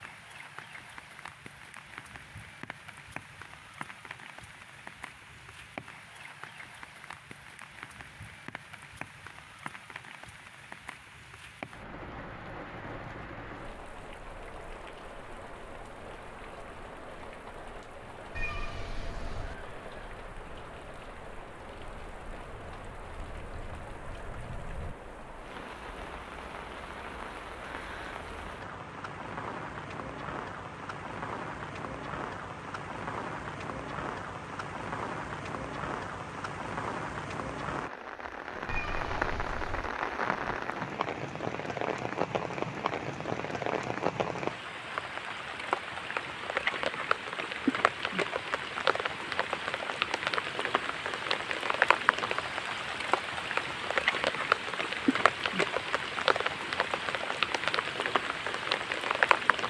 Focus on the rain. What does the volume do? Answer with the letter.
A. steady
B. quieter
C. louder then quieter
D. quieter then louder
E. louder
E.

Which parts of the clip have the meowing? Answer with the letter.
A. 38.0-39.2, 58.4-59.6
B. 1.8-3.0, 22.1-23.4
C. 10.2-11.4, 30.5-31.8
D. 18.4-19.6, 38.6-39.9
D.